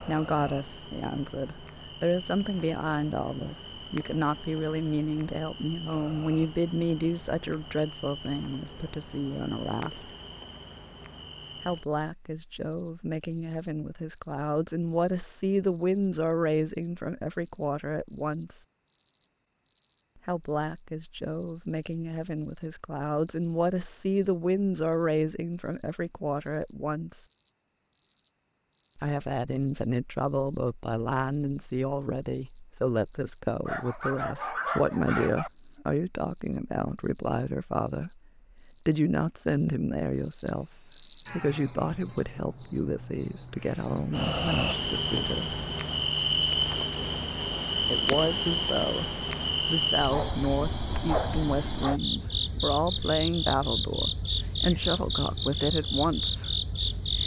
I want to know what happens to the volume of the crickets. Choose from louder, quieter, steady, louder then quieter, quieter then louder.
quieter then louder.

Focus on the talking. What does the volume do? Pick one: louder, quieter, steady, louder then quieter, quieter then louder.
steady.